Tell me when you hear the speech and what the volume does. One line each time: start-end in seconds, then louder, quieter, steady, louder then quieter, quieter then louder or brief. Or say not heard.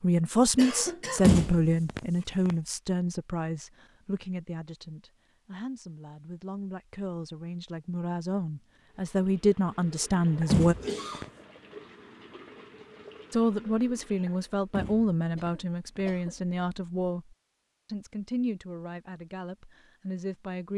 0.0-10.8 quieter then louder
13.3-20.7 quieter.